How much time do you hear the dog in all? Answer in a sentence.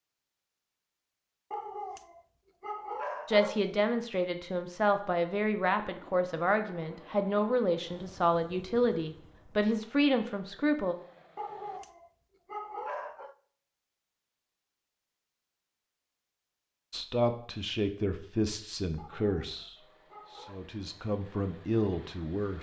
You can hear the dog for 6 seconds altogether.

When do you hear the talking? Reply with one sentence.
You can hear the talking from 3.2 to 10.9 s and from 16.9 to 22.5 s.